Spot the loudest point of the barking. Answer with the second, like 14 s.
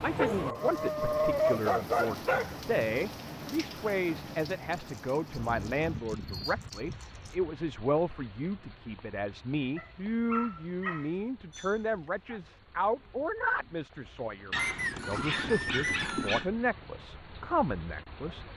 1 s.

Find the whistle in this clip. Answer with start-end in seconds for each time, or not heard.
14.6-16.3.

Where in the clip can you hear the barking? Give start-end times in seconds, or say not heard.
0.0-2.6, 4.7-7.3, 9.8-12.4, 14.5-16.5.